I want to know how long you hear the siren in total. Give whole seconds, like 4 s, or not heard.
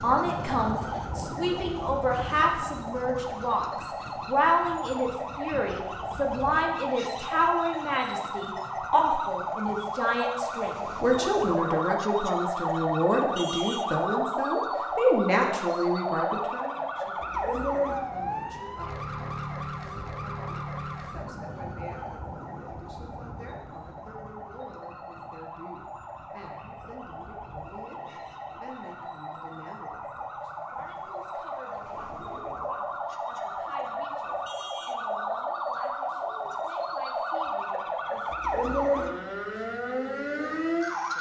41 s.